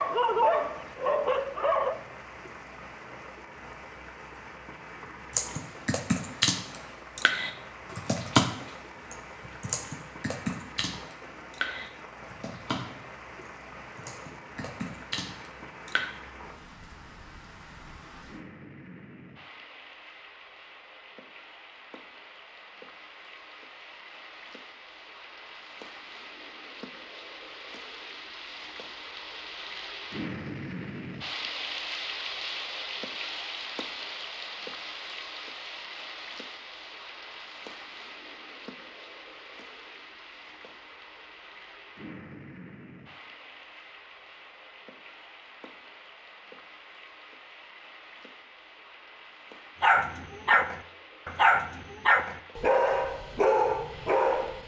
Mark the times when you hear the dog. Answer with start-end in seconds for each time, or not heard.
0.0-1.9, 49.8-54.6.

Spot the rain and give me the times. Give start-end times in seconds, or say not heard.
0.0-54.6.